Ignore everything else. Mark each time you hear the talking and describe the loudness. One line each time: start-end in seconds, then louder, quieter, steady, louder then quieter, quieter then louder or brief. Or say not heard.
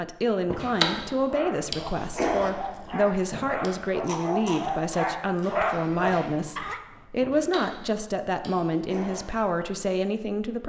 0.0-10.6 steady.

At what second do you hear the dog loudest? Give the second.
6 s.